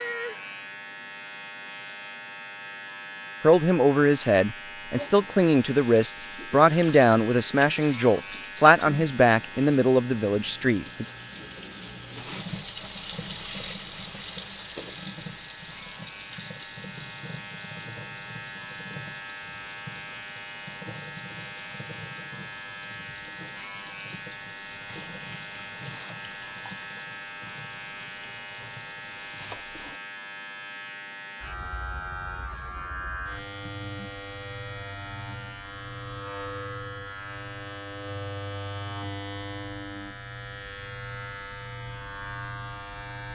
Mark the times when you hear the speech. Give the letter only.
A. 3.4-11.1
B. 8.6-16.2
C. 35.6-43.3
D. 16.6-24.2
A.